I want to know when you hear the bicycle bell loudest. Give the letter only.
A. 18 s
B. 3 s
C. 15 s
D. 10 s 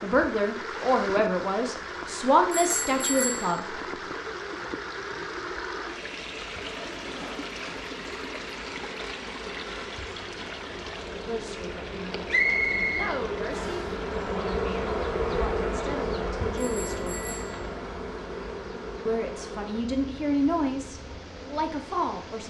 B.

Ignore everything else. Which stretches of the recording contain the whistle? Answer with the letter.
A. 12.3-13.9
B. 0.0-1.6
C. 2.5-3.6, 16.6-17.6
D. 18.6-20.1
A.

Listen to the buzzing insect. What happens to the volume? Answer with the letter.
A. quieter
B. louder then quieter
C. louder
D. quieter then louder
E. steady
B.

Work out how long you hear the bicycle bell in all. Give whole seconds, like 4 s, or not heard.
2 s.